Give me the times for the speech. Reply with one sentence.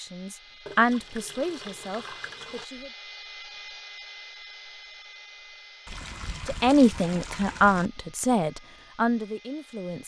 You can hear the speech from 0.0 to 2.9 s and from 6.5 to 10.0 s.